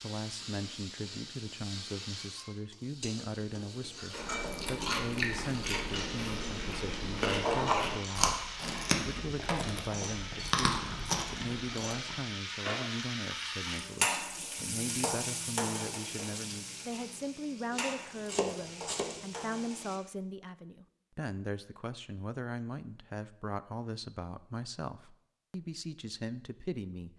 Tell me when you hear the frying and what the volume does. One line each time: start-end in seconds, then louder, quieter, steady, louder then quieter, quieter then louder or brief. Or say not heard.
0.0-20.0 louder then quieter.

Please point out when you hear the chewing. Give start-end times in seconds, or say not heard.
4.1-12.2.